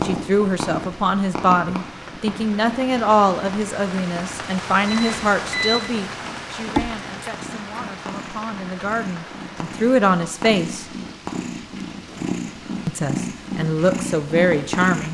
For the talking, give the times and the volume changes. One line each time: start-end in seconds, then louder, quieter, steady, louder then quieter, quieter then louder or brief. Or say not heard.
0.0-10.8 quieter then louder
12.8-15.0 brief.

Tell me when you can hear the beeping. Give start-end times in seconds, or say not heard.
4.8-5.8.